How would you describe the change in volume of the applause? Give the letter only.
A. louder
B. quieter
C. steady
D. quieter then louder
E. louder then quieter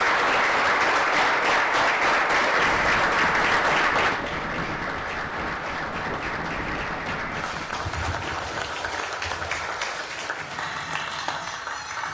B.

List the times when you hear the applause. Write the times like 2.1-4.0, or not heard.
0.0-12.0.